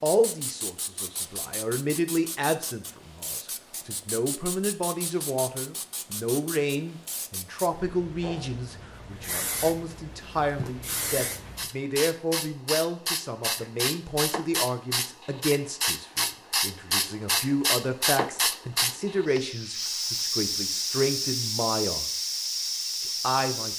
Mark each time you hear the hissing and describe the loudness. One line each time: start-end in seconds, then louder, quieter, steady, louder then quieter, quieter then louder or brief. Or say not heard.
0.0-23.7 louder.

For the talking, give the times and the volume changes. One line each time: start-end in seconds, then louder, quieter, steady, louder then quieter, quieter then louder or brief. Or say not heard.
0.0-22.1 steady
23.0-23.7 brief.